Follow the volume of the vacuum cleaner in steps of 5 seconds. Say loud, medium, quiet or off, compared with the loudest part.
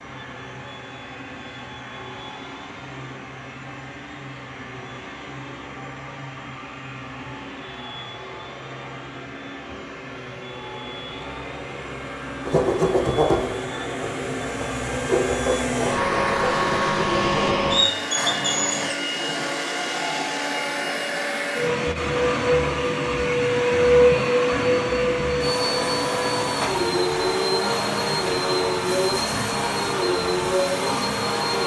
quiet, quiet, medium, loud, loud, loud, loud.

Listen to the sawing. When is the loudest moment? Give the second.
13 s.